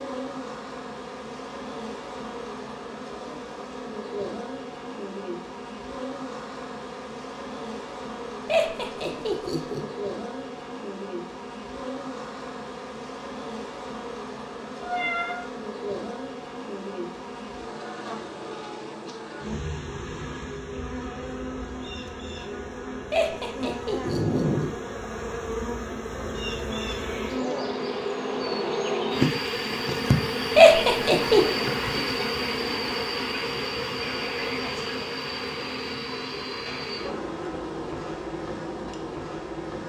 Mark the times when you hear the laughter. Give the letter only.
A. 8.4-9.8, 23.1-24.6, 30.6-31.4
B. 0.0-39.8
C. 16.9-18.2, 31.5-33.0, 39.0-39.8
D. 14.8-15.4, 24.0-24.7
A.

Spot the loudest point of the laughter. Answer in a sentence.
The volume of the laughter peaks at 31 seconds.